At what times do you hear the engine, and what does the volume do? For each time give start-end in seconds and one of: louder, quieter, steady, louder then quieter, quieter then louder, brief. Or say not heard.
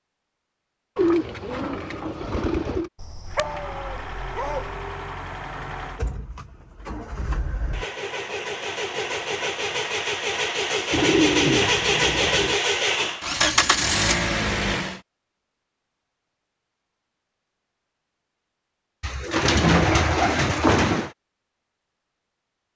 3.2-15.0 louder.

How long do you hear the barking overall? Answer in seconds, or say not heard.
2 s.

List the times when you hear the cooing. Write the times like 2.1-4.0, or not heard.
0.9-2.9, 10.9-12.6, 19.0-21.1.